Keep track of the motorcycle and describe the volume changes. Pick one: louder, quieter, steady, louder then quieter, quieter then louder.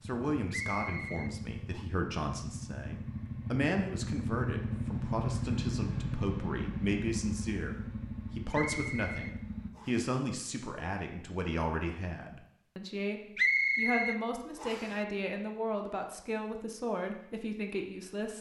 louder then quieter.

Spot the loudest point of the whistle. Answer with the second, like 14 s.
14 s.